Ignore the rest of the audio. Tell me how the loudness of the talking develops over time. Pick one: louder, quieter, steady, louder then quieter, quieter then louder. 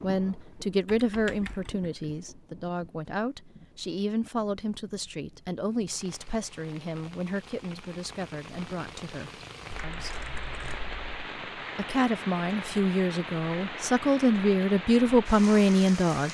quieter then louder.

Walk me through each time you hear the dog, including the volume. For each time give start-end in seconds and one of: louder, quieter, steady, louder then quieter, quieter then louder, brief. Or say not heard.
not heard.